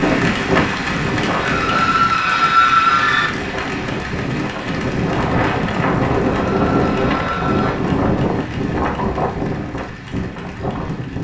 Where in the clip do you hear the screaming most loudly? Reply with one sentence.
The loudest moment of the screaming is at 3 seconds.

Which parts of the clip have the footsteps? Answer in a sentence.
The footsteps can't be heard in this clip.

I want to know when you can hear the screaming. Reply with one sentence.
You can hear the screaming from 1.4 to 3.3 s and from 6.3 to 7.8 s.